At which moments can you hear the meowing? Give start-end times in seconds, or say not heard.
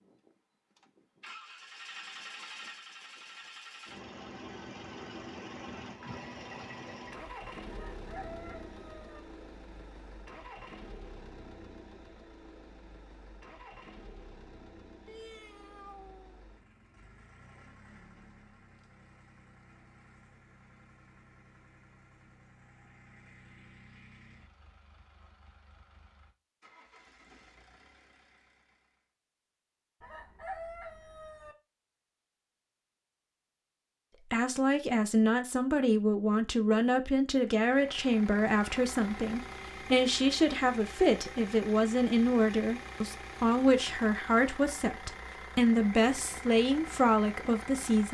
15.1-16.4.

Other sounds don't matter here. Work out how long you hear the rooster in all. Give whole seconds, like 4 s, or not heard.
3 s.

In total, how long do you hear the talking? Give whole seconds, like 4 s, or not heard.
14 s.